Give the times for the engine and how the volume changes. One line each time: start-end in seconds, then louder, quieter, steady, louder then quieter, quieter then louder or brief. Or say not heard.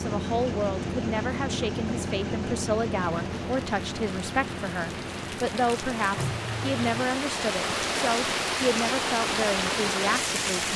0.0-10.7 quieter.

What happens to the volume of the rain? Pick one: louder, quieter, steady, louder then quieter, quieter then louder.
louder.